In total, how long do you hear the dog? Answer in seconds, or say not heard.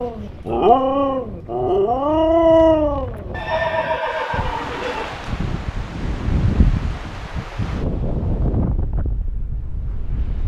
3 s.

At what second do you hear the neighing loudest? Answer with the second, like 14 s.
4 s.